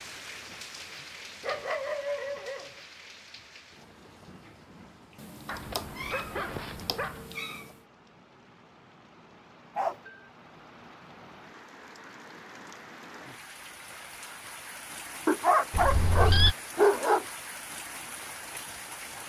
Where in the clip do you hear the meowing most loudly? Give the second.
16 s.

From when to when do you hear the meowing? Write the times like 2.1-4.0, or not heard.
5.2-7.7, 15.7-16.6.